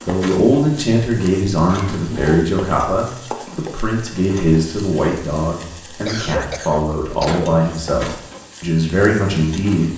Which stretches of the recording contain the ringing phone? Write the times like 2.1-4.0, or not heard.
not heard.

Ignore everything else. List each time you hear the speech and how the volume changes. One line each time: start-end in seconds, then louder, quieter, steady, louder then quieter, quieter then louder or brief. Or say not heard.
0.0-9.9 steady.